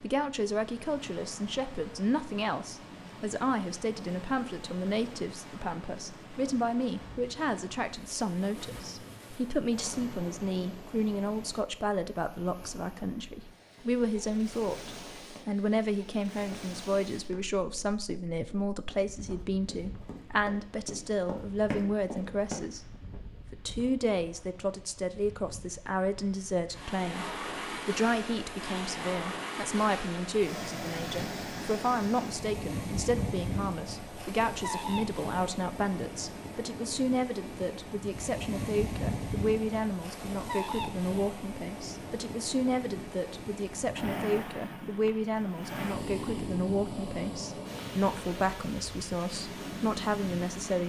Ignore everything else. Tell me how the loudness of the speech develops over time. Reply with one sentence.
The volume of the speech stays about the same.